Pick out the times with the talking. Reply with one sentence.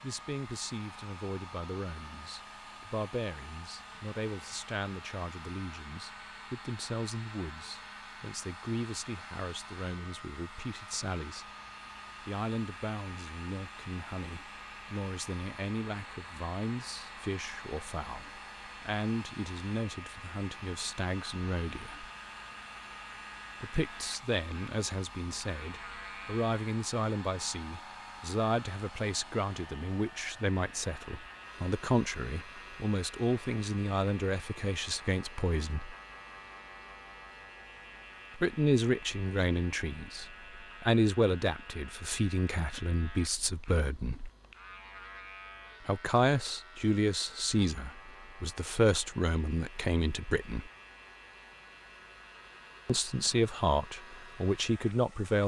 The talking can be heard from 0.0 to 11.4 s, from 12.2 to 22.1 s, from 23.6 to 36.0 s, from 38.4 to 44.3 s, from 45.9 to 50.7 s and from 52.9 to 55.4 s.